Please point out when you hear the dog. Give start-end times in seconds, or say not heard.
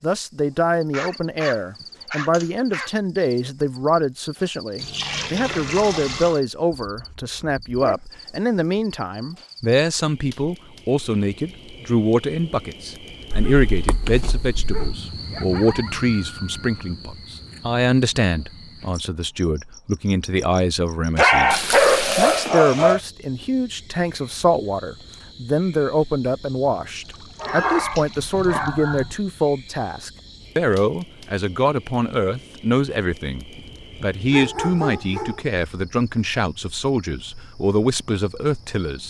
0.9-2.9, 7.0-8.0, 13.3-15.0, 21.1-23.0, 27.4-29.1, 33.5-35.4.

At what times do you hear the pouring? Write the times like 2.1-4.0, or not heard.
4.8-6.4, 21.5-22.5, 27.0-28.8.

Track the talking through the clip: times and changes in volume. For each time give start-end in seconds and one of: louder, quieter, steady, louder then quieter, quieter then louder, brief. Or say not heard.
0.0-39.0 steady.